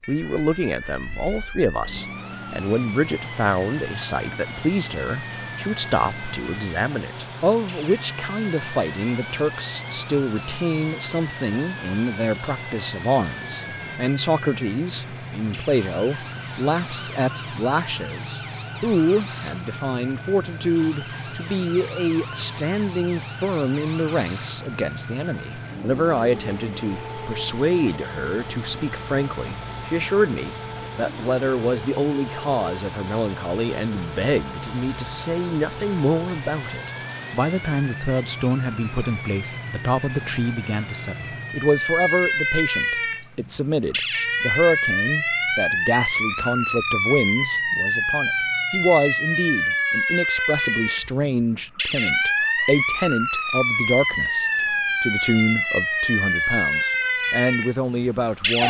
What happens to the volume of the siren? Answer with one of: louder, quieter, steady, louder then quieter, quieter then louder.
louder.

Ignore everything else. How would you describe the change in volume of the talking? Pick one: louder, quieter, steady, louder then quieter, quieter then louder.
steady.